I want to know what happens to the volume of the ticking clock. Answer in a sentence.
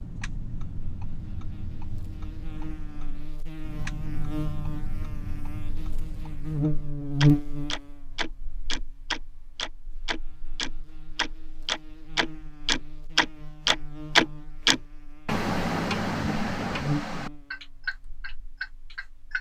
The volume of the ticking clock goes up, then down.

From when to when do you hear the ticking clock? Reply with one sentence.
The ticking clock can be heard from 0.0 to 19.3 s.